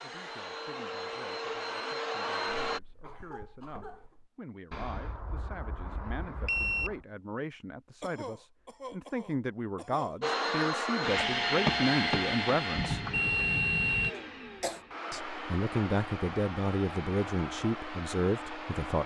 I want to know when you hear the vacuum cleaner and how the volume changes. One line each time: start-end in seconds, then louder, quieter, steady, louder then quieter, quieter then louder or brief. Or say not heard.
0.0-2.8 brief
10.2-19.0 quieter.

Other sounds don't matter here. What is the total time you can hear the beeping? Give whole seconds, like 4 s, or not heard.
4 s.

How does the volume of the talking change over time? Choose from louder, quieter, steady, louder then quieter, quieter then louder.
louder.